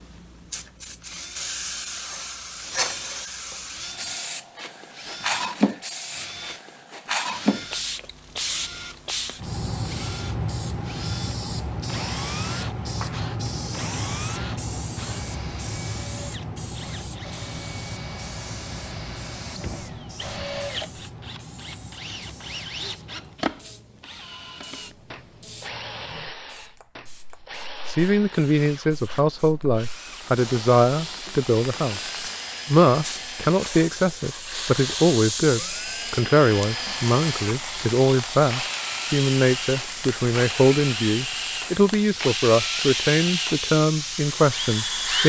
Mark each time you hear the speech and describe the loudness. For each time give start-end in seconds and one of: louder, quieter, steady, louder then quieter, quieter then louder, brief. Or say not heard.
27.9-45.2 steady.